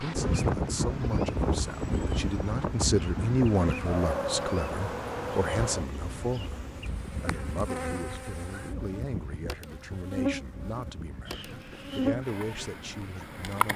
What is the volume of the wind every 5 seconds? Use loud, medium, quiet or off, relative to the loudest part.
loud, medium, quiet.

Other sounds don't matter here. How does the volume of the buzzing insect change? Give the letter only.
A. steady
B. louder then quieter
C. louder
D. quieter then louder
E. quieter
C.